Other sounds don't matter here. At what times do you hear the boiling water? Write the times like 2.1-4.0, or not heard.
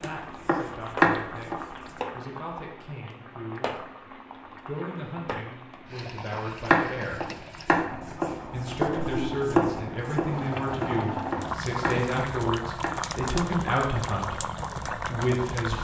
0.0-15.7.